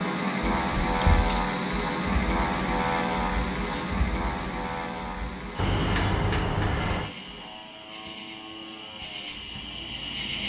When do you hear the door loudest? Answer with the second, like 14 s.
6 s.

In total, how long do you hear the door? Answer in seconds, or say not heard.
2 s.